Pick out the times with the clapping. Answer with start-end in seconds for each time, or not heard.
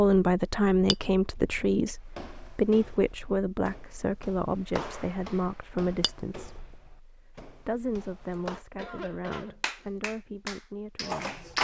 9.3-11.5.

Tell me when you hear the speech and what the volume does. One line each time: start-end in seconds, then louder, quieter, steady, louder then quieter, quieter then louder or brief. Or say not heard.
0.0-11.4 quieter.